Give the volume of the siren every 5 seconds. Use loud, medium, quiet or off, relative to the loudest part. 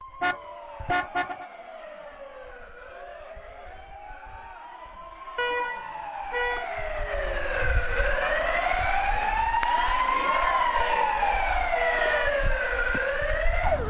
quiet, loud, loud.